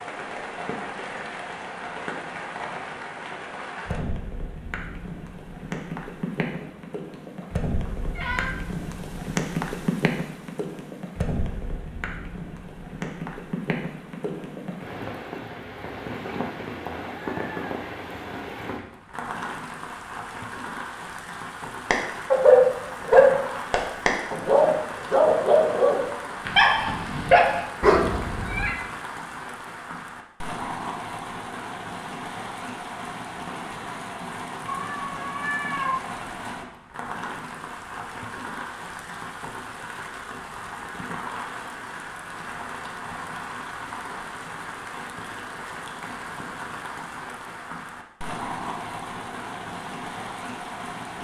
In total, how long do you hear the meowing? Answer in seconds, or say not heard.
4 s.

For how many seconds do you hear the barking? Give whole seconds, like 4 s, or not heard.
6 s.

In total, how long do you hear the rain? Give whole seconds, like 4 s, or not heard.
51 s.